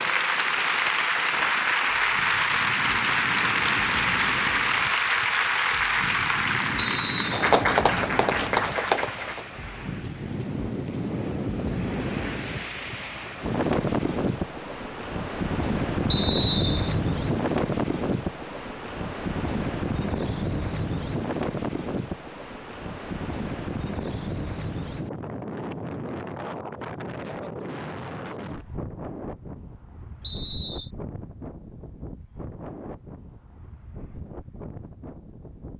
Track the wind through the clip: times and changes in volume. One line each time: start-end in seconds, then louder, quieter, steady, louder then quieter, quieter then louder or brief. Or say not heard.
0.0-35.7 louder then quieter.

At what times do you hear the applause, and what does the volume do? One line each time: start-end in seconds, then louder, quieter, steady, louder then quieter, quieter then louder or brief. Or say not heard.
0.0-9.4 steady.